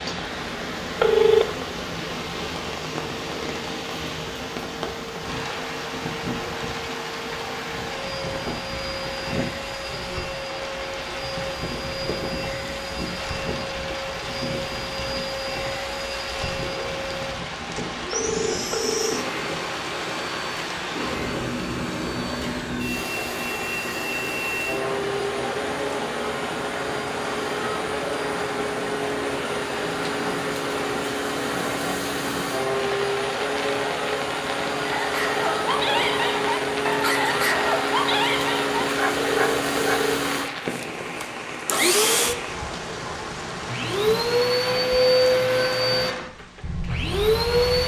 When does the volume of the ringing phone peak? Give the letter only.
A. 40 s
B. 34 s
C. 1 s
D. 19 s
C.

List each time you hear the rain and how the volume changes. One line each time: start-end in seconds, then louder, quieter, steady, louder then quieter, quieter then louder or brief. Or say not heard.
0.0-47.8 steady.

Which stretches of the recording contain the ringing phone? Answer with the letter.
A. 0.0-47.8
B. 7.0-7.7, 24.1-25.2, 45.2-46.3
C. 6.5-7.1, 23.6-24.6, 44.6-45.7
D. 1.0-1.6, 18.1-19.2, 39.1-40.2
D.